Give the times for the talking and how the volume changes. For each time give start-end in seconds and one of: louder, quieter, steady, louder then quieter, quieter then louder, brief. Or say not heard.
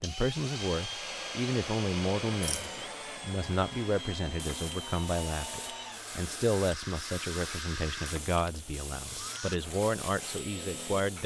0.0-11.2 steady.